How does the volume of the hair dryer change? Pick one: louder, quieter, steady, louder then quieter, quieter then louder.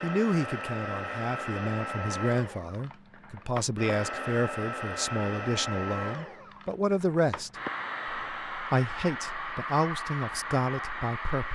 steady.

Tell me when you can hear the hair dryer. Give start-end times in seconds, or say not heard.
0.0-11.4.